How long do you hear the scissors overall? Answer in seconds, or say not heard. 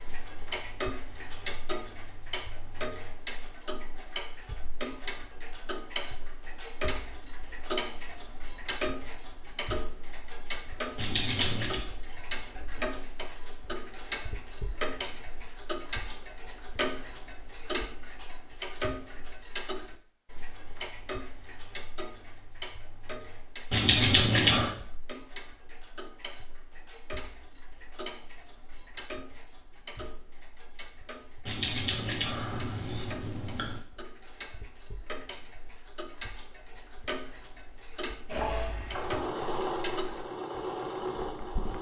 4 s.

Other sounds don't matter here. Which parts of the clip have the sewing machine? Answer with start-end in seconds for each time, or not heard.
38.2-41.7.